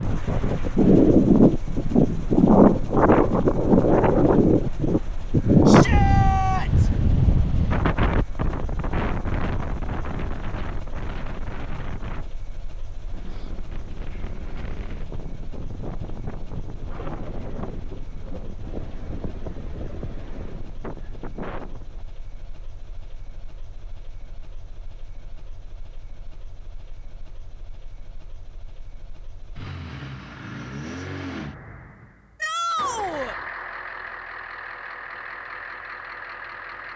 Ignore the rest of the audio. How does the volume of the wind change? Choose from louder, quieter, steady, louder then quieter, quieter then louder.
quieter.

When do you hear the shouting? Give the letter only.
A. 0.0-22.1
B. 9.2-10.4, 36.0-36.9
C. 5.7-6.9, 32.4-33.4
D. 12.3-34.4
C.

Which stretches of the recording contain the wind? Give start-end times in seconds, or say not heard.
0.0-22.1.